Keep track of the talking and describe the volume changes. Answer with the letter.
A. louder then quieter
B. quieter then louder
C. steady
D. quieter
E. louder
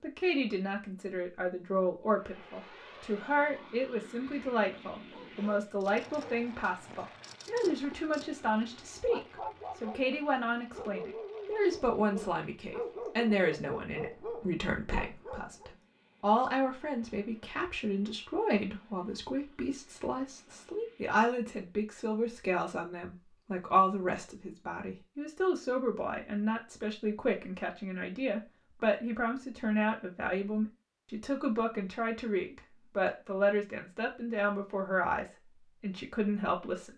C.